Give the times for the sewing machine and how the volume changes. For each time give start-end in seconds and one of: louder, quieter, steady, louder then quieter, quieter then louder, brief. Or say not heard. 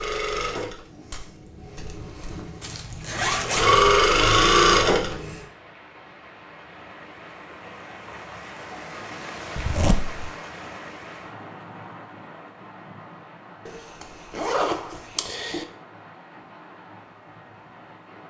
0.0-5.5 quieter then louder.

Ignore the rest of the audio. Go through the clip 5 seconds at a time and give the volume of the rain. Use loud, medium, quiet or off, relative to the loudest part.
off, loud, loud, medium.